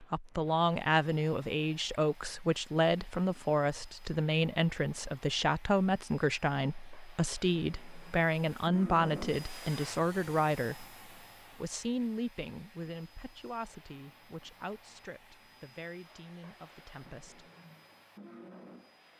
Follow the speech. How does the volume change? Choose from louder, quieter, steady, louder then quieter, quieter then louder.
quieter.